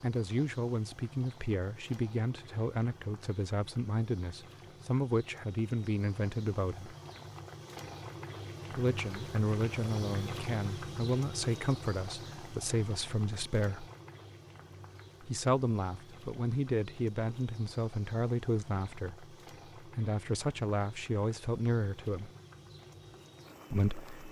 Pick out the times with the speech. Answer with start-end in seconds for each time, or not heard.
0.0-7.0, 8.7-13.8, 15.2-22.3, 23.7-24.2.